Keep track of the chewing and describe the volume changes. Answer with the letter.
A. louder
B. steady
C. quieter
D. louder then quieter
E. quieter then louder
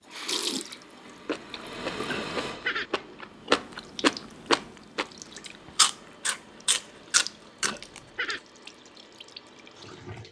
A.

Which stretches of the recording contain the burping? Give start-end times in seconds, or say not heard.
2.1-2.9, 7.6-8.4.